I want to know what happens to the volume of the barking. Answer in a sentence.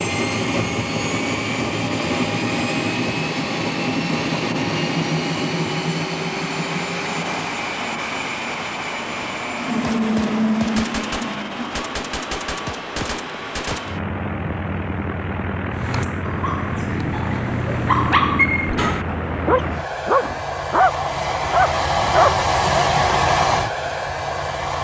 The volume of the barking goes up.